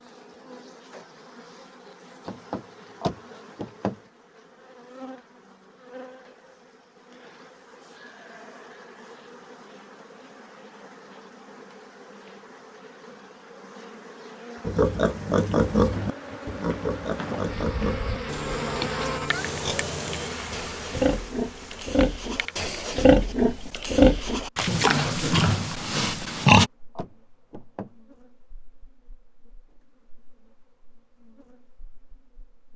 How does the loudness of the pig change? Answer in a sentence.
The volume of the pig goes down, then up.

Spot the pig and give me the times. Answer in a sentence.
You can hear the pig from 14.7 to 26.7 s.